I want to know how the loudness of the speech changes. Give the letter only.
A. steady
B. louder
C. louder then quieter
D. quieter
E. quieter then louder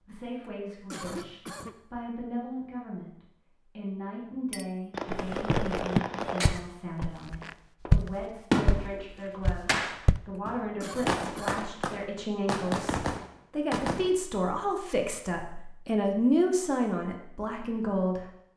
B.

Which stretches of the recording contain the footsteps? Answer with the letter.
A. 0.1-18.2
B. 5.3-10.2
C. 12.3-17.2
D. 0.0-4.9
B.